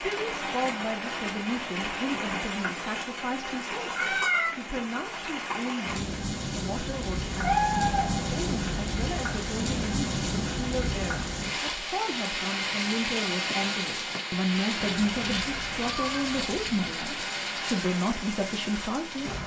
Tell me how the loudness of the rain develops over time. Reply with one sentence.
The volume of the rain stays about the same.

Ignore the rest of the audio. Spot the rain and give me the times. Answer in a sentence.
The rain can be heard from 0.0 to 19.4 s.